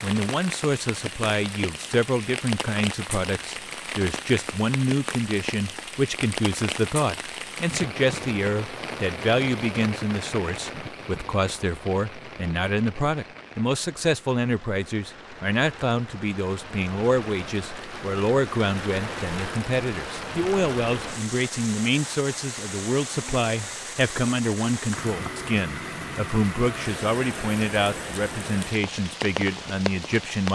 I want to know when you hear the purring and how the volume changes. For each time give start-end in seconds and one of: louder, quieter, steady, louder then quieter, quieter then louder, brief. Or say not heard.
not heard.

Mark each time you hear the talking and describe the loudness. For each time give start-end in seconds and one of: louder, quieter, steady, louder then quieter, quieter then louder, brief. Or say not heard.
0.0-30.4 steady.